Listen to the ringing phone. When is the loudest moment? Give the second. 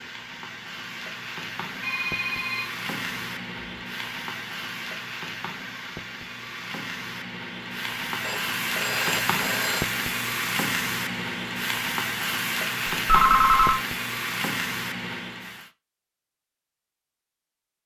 13 s.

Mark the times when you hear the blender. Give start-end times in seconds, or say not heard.
not heard.